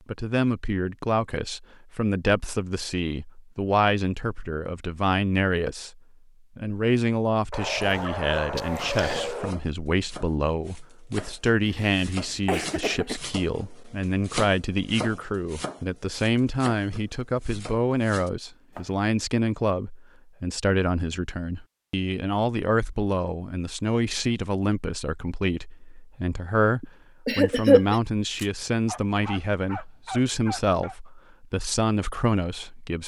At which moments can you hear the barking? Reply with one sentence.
The barking can be heard from 7.5 to 9.6 s and from 28.4 to 30.9 s.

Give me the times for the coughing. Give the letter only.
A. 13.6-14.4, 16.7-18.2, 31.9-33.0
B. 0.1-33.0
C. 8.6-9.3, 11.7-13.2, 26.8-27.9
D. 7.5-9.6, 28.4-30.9
C.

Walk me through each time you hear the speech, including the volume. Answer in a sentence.
The speech can be heard from 0.1 to 33.0 s, at a steady volume.